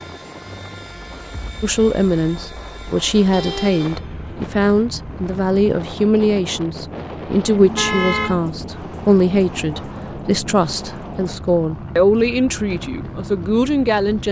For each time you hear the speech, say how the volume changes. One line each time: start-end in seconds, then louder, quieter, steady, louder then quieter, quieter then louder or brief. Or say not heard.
1.6-14.2 steady.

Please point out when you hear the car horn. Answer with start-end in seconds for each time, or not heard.
3.1-4.0, 7.5-8.4.